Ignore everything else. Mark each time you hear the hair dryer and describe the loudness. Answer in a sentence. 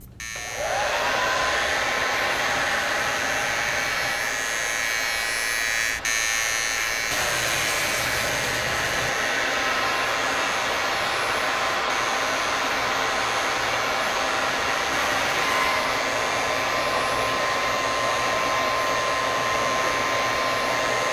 You can hear the hair dryer from 0.0 to 21.0 s, getting quieter then louder.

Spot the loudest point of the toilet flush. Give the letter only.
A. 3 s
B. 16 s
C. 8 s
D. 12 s
C.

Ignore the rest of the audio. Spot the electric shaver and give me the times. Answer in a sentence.
The electric shaver can be heard from 0.0 to 21.0 s.